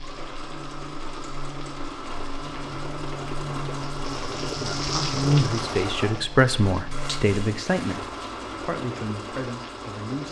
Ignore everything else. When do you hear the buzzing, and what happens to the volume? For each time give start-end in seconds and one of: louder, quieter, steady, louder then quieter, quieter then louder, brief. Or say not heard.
0.0-7.3 louder then quieter.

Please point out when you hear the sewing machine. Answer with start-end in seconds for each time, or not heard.
0.0-10.2.